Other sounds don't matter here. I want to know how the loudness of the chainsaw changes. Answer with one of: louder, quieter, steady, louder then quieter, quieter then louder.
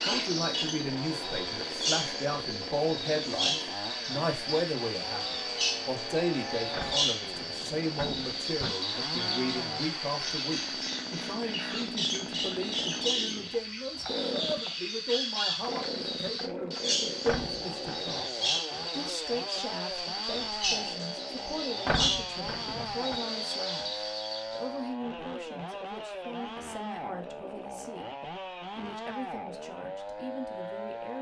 steady.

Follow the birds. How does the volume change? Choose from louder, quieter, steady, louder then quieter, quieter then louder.
steady.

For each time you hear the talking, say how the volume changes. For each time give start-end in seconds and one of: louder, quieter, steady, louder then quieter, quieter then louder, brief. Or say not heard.
0.0-31.1 quieter.